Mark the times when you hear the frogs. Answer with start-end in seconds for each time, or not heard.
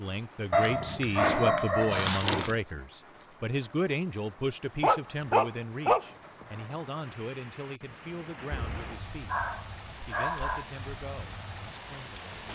not heard.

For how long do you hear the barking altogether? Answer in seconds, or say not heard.
6 s.